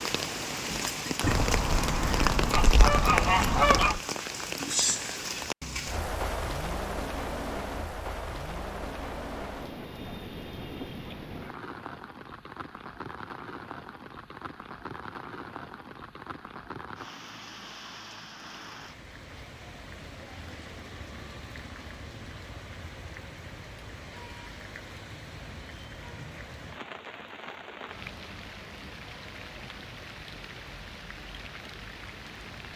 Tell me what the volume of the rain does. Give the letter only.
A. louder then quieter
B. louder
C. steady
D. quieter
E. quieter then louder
D.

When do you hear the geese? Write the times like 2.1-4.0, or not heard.
1.2-4.0.